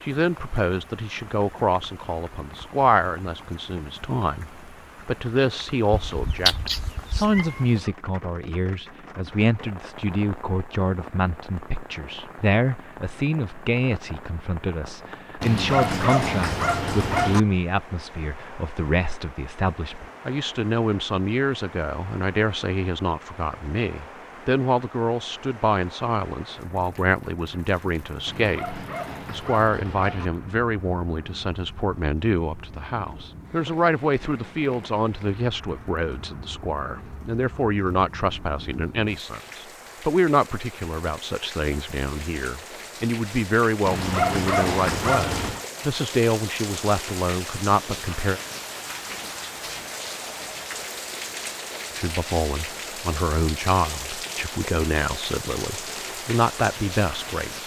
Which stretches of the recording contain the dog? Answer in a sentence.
The dog can be heard from 15.4 to 17.4 s, from 28.2 to 30.3 s and from 43.9 to 45.6 s.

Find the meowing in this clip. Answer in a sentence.
You can hear the meowing from 5.9 to 7.8 s.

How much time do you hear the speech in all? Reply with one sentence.
The speech can be heard for 54 seconds in total.